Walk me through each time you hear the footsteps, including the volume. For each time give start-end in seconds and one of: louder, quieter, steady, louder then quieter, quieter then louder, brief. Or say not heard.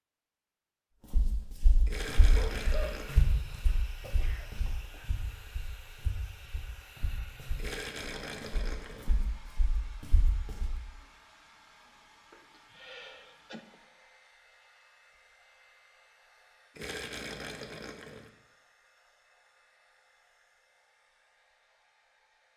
1.1-10.7 quieter.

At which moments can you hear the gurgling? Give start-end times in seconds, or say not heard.
1.9-3.3, 7.5-9.2, 16.8-18.3.